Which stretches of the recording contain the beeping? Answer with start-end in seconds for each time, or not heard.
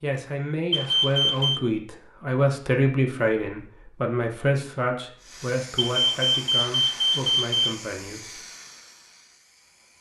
0.7-1.6, 5.8-7.8.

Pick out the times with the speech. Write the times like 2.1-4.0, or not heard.
0.0-8.4.